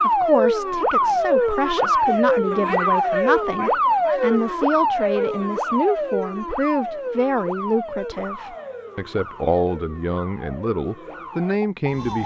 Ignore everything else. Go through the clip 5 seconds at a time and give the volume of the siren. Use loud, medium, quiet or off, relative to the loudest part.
loud, medium, quiet.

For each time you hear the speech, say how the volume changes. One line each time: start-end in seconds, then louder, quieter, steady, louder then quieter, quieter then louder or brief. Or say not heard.
0.0-12.2 steady.